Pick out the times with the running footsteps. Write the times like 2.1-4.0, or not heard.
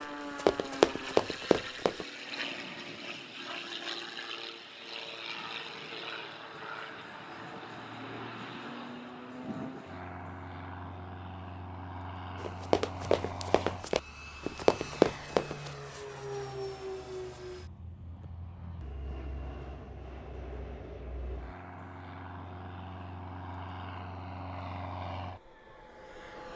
0.0-2.0, 12.4-15.7.